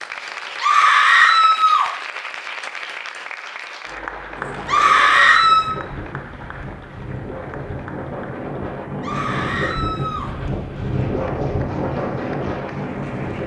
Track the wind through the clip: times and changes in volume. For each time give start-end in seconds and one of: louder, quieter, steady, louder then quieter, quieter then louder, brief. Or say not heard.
4.3-13.4 louder.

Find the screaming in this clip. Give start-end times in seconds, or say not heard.
0.6-1.9, 4.7-5.8, 9.0-10.3.